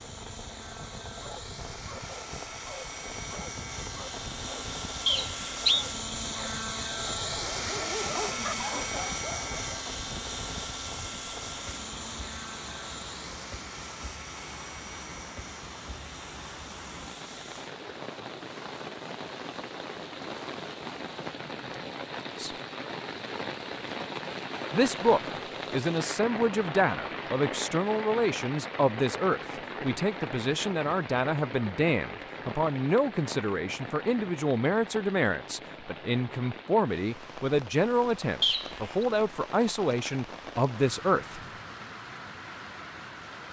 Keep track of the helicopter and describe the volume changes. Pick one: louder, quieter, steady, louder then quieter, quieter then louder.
louder then quieter.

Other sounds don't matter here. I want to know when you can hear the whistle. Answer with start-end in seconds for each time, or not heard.
5.0-5.8, 38.4-39.0.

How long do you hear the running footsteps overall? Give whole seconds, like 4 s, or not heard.
not heard.